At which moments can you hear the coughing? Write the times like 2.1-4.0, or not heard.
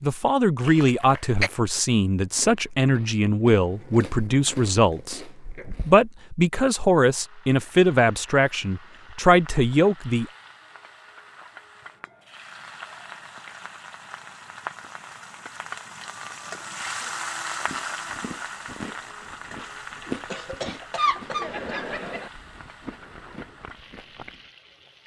0.7-1.5, 20.3-22.3.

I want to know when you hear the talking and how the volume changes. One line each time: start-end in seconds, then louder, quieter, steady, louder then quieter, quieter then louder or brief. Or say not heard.
0.0-10.2 steady.